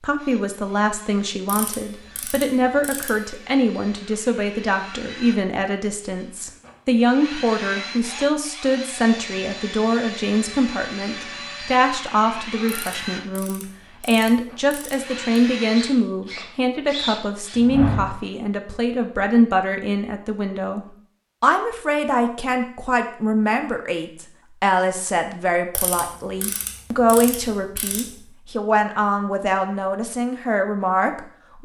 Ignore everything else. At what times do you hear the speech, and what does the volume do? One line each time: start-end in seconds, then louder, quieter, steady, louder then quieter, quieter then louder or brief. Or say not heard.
0.0-31.5 steady.